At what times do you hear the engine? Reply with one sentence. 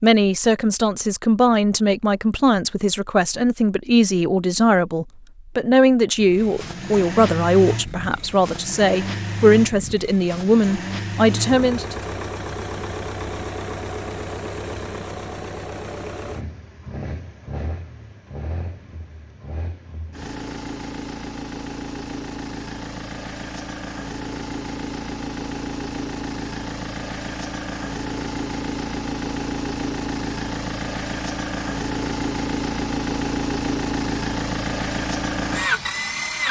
The engine can be heard from 6.2 to 36.4 s.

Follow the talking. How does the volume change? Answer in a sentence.
The loudness of the talking stays about the same.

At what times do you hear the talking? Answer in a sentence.
The talking can be heard from 0.0 to 11.9 s.